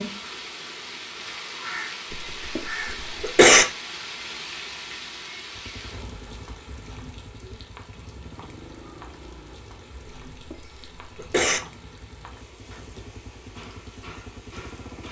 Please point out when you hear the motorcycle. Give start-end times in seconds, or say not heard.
5.5-15.0.